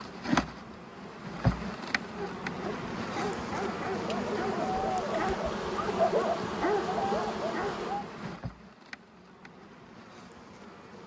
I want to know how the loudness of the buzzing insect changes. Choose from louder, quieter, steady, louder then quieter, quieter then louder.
quieter.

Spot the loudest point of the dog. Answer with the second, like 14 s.
6 s.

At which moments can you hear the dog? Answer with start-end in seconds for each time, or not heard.
2.1-8.1.